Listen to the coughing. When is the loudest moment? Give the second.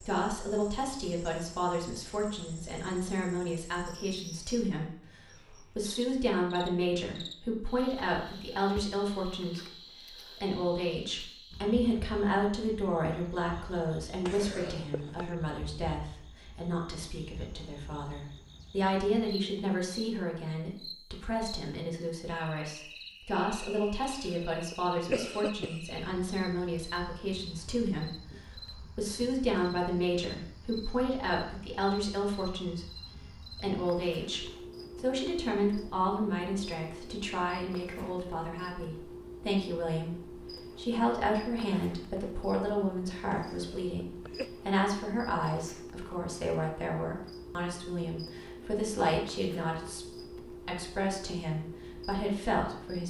25 s.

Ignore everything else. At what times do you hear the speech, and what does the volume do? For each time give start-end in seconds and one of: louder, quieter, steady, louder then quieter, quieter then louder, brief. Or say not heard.
0.0-53.0 steady.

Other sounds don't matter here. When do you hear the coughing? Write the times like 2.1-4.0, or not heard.
14.2-15.3, 24.0-25.9, 43.3-44.5.